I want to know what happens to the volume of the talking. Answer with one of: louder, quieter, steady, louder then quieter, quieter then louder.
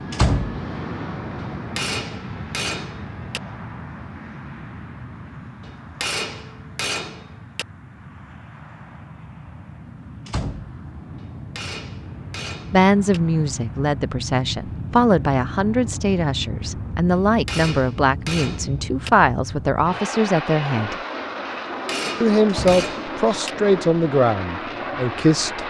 steady.